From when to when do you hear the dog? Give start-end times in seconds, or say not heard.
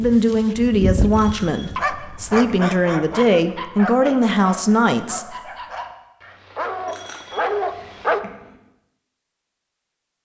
0.0-8.2.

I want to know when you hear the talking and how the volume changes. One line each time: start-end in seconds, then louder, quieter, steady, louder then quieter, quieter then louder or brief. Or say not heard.
0.0-5.3 quieter then louder.